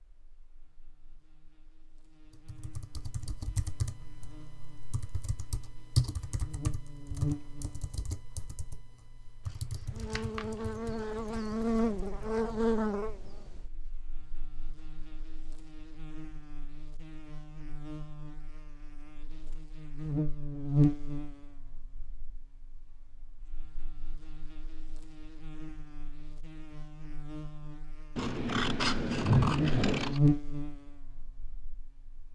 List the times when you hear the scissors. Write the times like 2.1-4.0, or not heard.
9.5-10.4, 28.1-30.2.